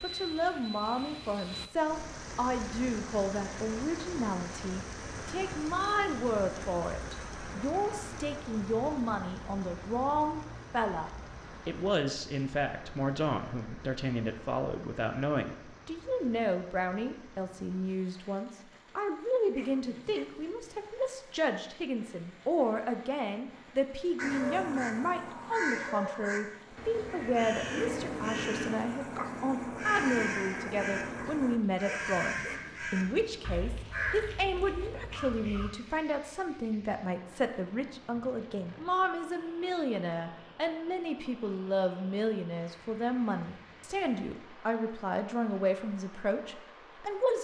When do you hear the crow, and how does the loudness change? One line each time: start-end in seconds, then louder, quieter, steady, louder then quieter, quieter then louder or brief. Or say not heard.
24.1-35.7 steady.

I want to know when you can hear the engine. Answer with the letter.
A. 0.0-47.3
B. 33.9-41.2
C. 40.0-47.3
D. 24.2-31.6
D.